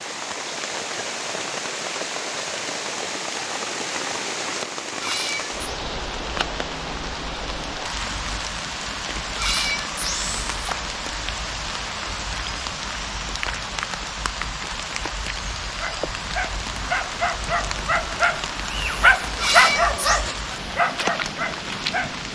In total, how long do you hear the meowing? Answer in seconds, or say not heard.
3 s.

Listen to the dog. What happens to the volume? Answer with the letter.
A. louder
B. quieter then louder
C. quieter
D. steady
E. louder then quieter
E.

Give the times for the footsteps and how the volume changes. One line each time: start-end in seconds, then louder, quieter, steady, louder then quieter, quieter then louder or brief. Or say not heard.
not heard.